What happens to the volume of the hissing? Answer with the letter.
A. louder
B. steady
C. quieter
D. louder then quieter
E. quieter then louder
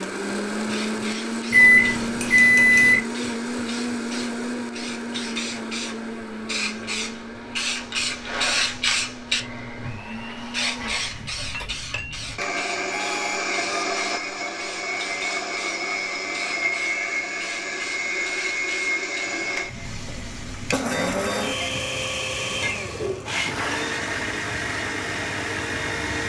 D.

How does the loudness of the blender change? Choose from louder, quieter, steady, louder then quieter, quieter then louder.
quieter then louder.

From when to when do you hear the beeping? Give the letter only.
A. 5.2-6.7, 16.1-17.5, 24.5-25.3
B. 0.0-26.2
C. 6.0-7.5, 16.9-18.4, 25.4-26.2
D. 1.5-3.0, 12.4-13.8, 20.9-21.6
D.